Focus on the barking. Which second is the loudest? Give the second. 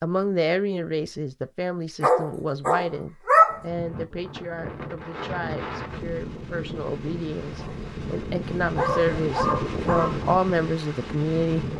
3 s.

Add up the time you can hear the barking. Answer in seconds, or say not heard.
4 s.